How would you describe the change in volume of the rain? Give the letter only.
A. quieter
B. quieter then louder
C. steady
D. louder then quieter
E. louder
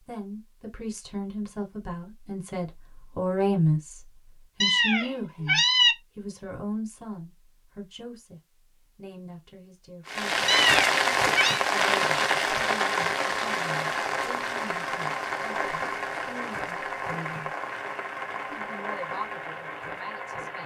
A.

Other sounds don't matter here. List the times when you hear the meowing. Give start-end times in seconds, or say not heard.
4.6-6.0, 10.4-11.6.